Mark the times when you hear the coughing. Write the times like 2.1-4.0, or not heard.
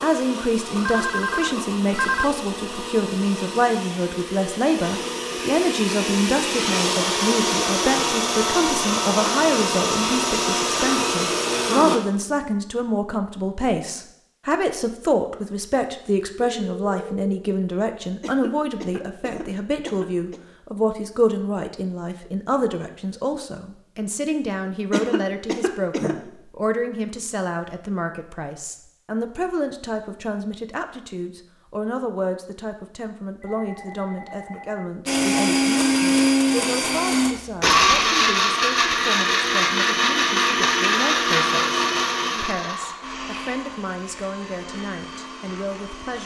18.2-20.4, 24.9-26.1.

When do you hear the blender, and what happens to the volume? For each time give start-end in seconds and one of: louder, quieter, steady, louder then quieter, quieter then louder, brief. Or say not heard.
0.0-12.0 louder
35.0-46.2 quieter.